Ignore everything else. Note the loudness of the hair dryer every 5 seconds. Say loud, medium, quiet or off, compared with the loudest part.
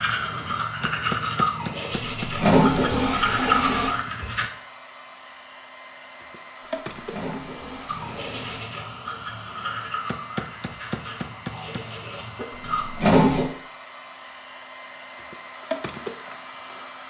loud, medium, loud, loud.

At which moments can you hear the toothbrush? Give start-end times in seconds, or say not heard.
0.0-4.5, 7.8-12.9.